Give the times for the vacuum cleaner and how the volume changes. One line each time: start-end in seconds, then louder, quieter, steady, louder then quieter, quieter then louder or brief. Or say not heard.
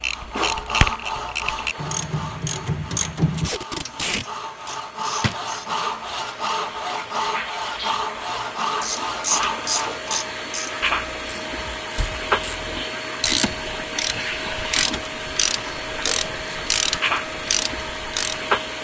0.0-18.8 louder.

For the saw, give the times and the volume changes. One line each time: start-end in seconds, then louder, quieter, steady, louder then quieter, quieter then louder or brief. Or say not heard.
0.0-10.3 quieter then louder.